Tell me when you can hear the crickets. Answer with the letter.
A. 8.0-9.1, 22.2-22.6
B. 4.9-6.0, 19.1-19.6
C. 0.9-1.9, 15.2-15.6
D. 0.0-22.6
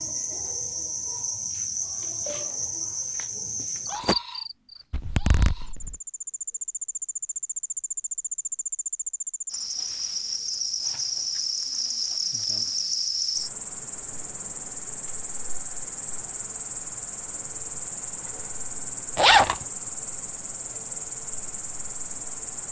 D.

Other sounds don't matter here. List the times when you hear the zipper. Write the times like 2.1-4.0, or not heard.
4.9-6.0, 19.1-19.6.